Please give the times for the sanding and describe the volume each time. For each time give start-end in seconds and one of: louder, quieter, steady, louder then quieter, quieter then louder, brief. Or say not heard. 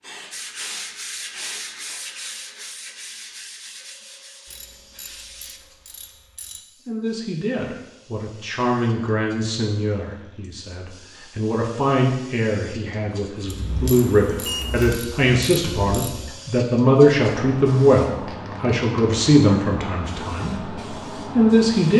0.3-5.6 quieter.